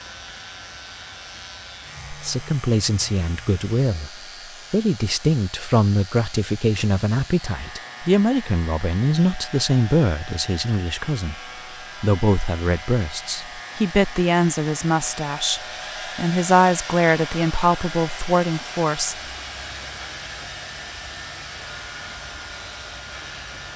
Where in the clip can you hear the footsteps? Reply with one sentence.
You can't hear the footsteps here.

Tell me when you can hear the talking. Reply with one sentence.
You can hear the talking from 2.1 to 4.1 s, from 4.7 to 11.4 s and from 12.0 to 19.1 s.